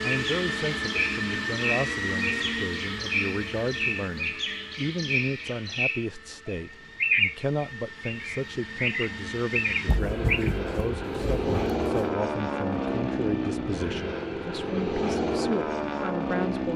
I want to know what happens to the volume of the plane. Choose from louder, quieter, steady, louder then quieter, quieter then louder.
quieter then louder.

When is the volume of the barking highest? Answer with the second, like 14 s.
10 s.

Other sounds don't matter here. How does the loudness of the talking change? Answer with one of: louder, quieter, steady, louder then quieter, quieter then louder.
steady.